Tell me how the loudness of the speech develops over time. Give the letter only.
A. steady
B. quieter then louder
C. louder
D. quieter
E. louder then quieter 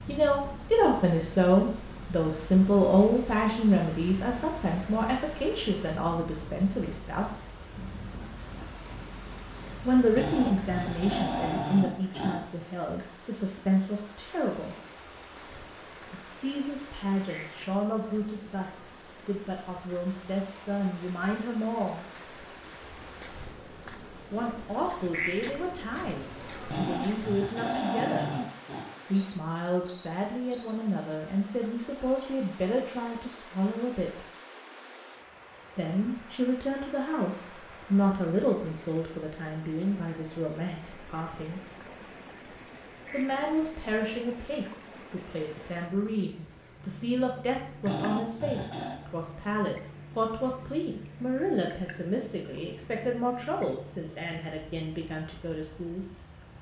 D.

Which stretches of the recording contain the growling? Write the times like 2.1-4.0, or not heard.
10.2-12.4, 26.7-28.9, 47.9-49.0.